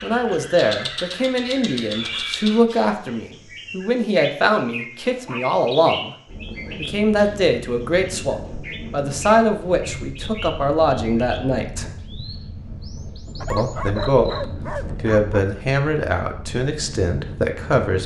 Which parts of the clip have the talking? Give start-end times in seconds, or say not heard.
0.0-6.2, 6.8-11.8, 13.5-18.0.